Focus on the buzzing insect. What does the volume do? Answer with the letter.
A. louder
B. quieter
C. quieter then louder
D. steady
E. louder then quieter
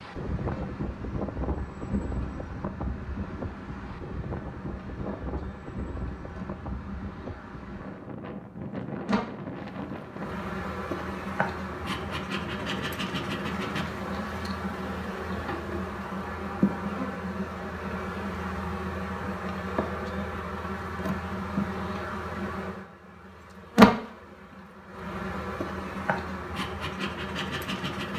A.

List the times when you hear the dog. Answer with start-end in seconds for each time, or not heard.
not heard.